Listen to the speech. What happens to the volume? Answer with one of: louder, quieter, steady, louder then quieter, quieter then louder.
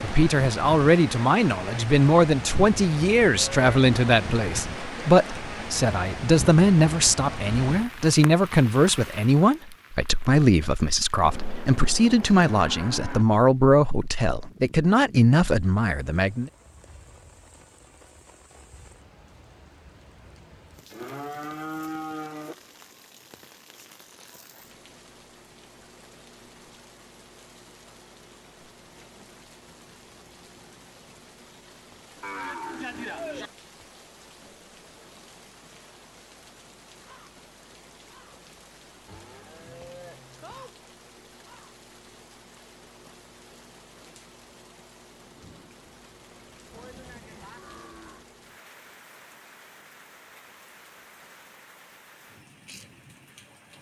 steady.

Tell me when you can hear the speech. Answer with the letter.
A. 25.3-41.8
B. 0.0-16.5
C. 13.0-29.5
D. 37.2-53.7
B.